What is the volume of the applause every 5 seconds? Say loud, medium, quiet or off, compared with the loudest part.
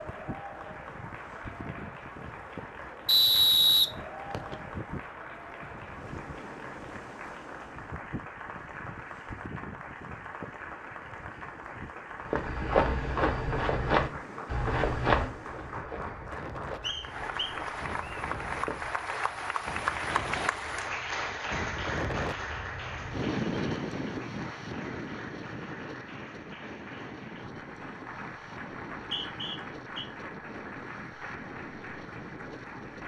medium, medium, medium, loud, loud, medium, medium.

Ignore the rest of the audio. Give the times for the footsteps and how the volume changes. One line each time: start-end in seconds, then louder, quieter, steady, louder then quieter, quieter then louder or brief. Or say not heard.
12.2-19.0 quieter.